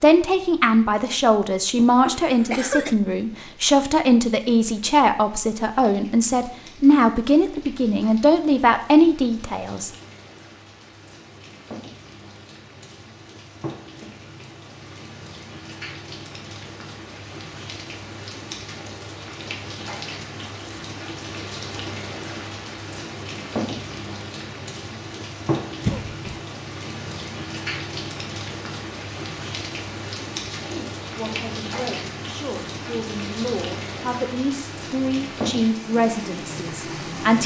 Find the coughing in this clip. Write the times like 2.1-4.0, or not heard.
2.0-3.0, 25.9-26.4.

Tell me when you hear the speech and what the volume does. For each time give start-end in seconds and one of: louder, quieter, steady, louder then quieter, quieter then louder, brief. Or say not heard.
0.0-9.9 steady
30.5-37.4 louder.